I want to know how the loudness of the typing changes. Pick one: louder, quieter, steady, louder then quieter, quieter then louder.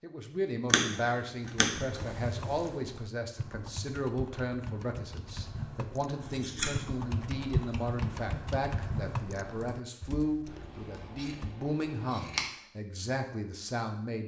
louder then quieter.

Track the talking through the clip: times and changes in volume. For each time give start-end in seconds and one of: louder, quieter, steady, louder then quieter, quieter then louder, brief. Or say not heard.
0.0-14.2 steady.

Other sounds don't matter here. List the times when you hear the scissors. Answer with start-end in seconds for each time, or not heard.
0.7-2.7, 6.2-6.8, 10.4-12.4.